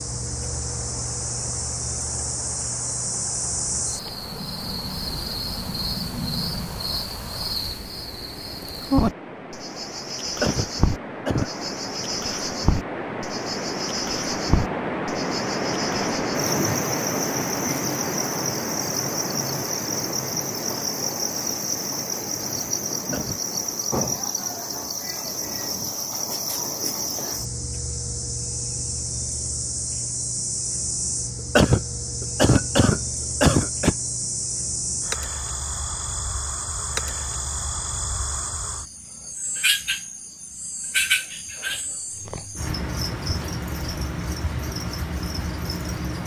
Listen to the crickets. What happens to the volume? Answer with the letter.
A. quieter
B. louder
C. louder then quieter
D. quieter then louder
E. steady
E.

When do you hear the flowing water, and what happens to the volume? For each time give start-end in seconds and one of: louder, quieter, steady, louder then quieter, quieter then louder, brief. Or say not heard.
0.0-24.0 louder then quieter.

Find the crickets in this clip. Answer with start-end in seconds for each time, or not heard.
0.0-46.2.